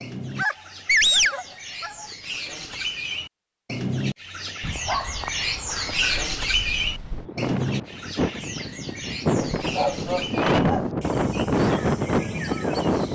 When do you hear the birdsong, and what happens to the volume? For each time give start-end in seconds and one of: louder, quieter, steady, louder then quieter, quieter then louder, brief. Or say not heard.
0.0-13.1 louder then quieter.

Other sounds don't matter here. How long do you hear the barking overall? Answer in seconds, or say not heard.
5 s.